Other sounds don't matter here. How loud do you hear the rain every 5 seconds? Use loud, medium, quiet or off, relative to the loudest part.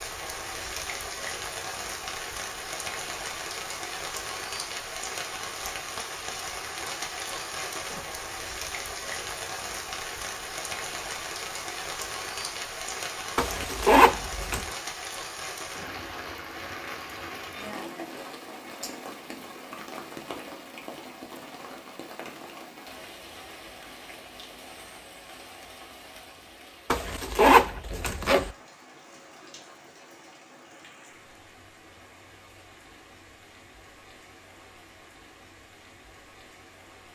loud, loud, loud, loud, medium, quiet, quiet, quiet.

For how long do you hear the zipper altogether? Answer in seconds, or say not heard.
3 s.